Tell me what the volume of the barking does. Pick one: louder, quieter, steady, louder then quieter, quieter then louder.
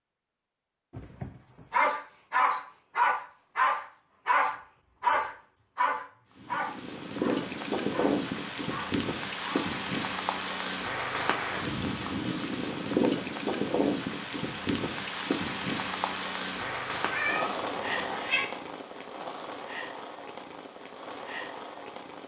quieter.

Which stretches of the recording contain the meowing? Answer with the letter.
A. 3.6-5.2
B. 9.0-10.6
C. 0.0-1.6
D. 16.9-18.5
D.